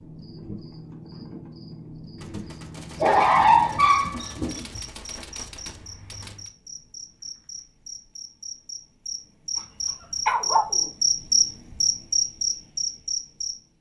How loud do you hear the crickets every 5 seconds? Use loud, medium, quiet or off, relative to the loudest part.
quiet, quiet, loud.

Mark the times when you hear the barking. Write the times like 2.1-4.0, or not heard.
3.0-4.8, 10.0-10.8.